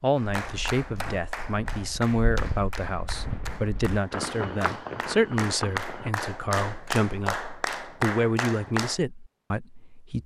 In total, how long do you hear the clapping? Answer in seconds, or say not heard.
9 s.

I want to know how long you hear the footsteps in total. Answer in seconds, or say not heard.
6 s.